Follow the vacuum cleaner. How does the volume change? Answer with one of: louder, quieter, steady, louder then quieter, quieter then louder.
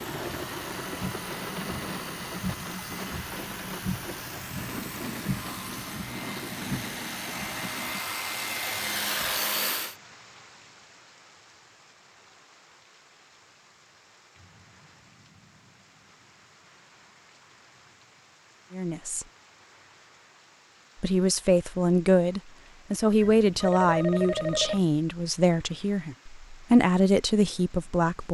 louder.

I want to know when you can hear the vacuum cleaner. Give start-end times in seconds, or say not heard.
0.0-9.9.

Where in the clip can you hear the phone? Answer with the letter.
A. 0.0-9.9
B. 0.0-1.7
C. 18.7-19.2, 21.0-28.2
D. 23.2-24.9
D.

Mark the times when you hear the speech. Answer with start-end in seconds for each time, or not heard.
18.7-19.2, 21.0-28.2.